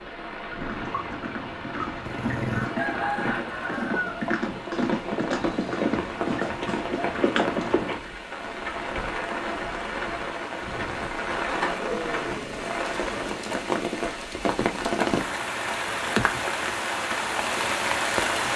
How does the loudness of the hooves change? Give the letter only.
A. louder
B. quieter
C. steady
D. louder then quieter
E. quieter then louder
A.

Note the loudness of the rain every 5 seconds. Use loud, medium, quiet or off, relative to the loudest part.
medium, medium, loud, loud.